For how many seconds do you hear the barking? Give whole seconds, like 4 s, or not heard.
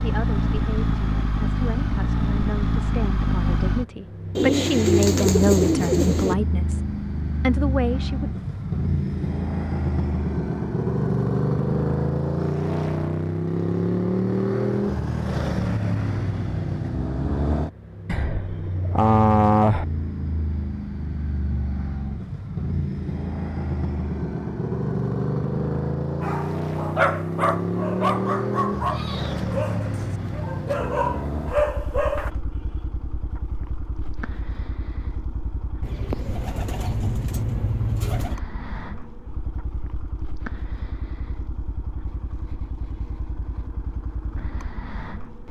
6 s.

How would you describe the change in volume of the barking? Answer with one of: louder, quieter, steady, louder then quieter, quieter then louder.
quieter then louder.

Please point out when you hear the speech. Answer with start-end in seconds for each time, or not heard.
0.0-8.3.